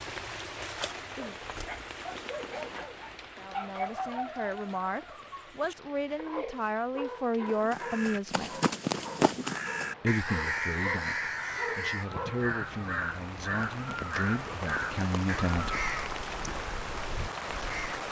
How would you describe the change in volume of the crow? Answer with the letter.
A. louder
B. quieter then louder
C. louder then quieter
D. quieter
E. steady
D.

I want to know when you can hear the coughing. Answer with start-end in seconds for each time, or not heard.
not heard.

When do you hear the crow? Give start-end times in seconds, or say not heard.
7.5-18.0.